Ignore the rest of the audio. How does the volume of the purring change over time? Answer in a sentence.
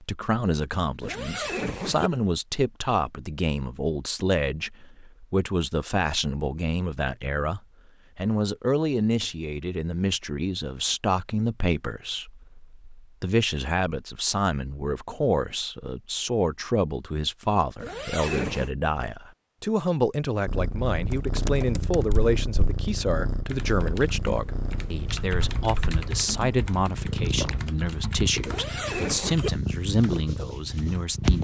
The loudness of the purring goes down, then up.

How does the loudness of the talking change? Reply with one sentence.
The volume of the talking stays about the same.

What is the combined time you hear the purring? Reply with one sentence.
You can hear the purring for 11 seconds altogether.